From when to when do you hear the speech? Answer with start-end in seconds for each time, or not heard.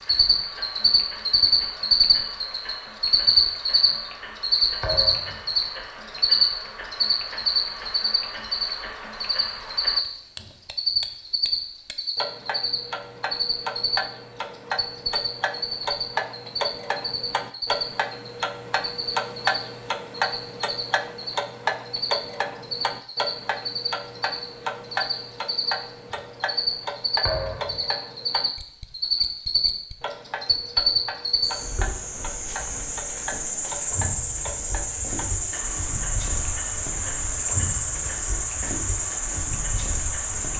not heard.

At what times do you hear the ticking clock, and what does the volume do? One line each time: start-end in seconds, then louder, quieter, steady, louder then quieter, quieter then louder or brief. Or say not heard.
0.0-40.5 louder then quieter.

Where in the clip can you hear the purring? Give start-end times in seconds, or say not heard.
not heard.